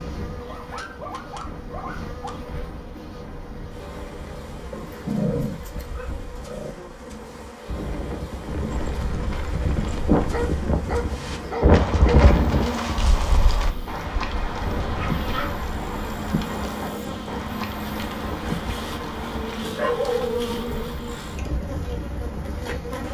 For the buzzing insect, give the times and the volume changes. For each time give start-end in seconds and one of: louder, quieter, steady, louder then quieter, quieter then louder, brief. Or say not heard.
0.0-23.0 louder.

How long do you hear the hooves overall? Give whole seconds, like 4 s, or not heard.
11 s.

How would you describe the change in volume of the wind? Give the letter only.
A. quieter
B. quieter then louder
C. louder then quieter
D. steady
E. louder
C.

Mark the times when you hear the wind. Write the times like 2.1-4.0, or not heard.
0.0-23.0.